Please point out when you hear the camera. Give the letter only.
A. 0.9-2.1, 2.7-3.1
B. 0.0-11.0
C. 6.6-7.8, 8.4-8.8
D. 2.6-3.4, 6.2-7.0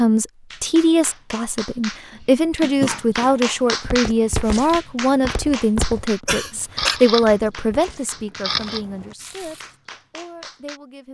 C.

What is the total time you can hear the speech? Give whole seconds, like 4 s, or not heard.
11 s.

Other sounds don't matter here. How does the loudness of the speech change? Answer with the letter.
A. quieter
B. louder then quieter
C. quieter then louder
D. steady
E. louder
A.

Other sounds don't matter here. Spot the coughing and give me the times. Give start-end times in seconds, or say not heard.
2.6-3.4, 6.2-7.0.